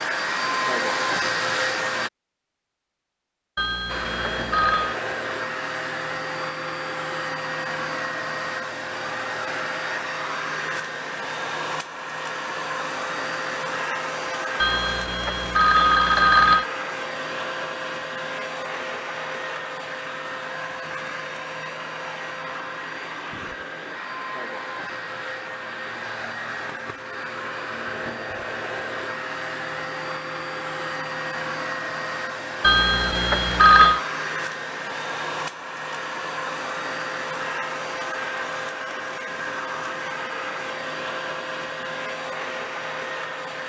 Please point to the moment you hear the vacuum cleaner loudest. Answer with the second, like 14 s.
1 s.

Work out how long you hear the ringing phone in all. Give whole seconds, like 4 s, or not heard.
5 s.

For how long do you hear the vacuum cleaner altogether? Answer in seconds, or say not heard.
42 s.